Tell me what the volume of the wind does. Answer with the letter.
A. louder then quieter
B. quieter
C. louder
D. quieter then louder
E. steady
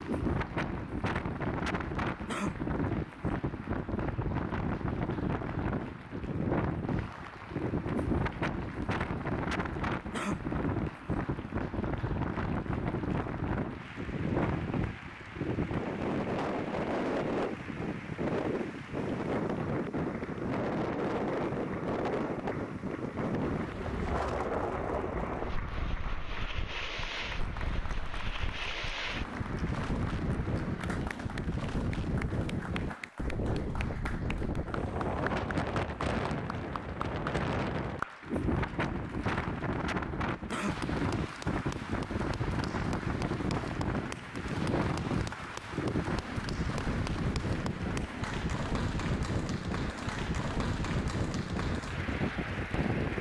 E.